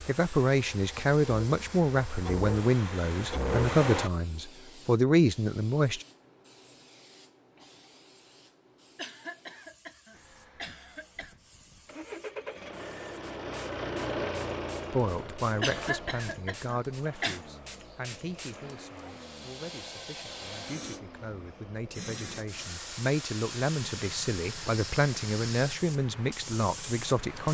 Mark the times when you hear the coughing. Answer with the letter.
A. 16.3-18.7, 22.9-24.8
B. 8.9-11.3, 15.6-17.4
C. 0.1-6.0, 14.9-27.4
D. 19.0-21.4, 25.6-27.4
B.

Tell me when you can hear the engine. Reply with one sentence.
The engine can be heard from 0.0 to 4.1 s and from 10.1 to 27.4 s.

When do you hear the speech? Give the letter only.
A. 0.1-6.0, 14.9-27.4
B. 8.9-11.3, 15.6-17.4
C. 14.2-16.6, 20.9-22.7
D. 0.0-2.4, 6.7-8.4
A.